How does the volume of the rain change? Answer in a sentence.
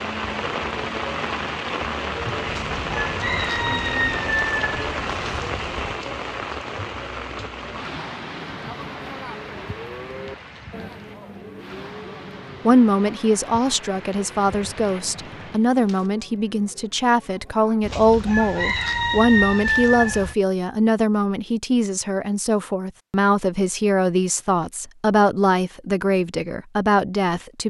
The loudness of the rain goes down.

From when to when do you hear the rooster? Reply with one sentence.
You can hear the rooster from 2.5 to 6.0 s and from 17.8 to 20.4 s.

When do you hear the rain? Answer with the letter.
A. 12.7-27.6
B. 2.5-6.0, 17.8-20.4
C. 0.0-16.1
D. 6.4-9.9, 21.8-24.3
C.